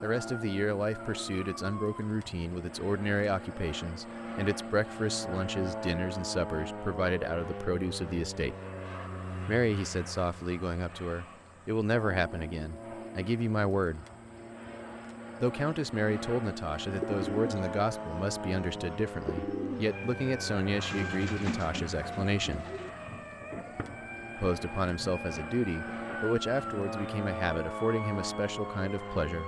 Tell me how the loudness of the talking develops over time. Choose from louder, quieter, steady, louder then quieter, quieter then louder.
steady.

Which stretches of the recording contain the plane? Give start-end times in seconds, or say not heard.
0.0-29.4.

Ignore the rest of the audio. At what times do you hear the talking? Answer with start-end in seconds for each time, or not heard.
0.0-8.6, 9.4-14.1, 15.4-22.6, 24.4-29.4.